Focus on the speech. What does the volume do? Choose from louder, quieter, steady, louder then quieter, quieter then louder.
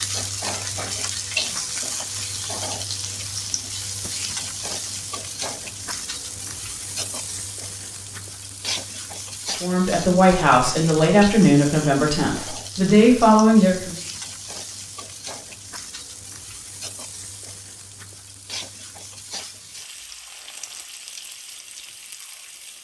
quieter then louder.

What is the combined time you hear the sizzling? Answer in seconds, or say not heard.
23 s.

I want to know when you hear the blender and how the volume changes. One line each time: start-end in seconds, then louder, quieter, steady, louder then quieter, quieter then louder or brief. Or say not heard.
not heard.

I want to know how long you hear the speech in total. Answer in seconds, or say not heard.
4 s.